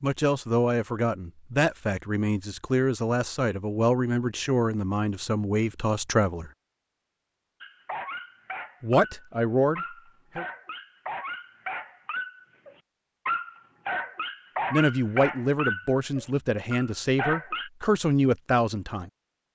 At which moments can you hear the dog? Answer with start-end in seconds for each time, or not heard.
7.6-17.7.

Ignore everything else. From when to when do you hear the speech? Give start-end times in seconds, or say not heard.
0.0-6.5, 8.8-10.4, 14.7-19.1.